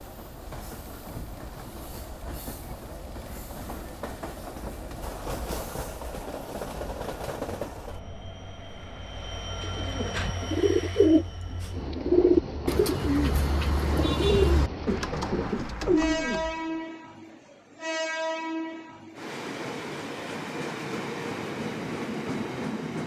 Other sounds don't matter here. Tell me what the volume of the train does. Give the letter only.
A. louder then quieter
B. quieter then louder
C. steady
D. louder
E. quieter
D.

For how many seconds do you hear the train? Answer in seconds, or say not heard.
23 s.